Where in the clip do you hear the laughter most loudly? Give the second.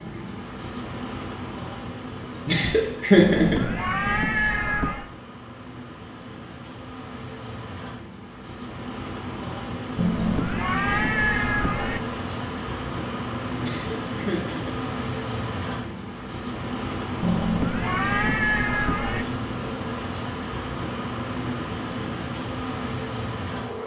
3 s.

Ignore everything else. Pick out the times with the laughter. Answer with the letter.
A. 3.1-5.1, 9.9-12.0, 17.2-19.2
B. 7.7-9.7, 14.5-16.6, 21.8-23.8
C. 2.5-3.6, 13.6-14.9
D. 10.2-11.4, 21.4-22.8
C.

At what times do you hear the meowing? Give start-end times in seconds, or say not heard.
3.1-5.1, 9.9-12.0, 17.2-19.2.